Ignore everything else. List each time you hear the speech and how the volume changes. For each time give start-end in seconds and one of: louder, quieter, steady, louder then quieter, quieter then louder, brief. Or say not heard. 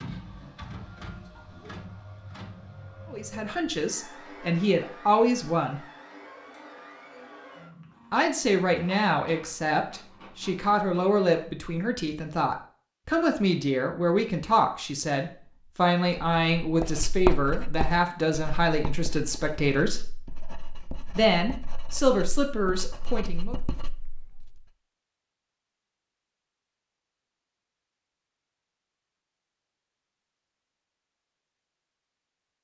3.0-5.8 brief
8.1-20.0 steady
21.1-23.6 brief.